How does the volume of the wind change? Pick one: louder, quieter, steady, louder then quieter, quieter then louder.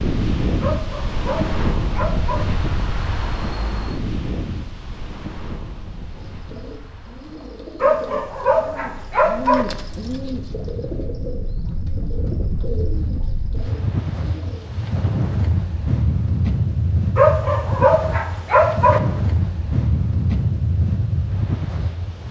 quieter then louder.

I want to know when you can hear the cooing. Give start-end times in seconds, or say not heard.
6.0-14.7.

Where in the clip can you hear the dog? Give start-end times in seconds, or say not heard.
0.6-2.5, 7.8-9.7, 17.1-19.0.